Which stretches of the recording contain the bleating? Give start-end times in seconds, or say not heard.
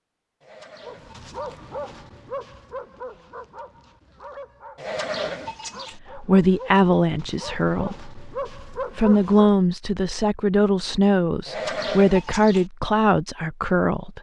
0.4-1.6, 4.8-6.0, 11.4-12.7.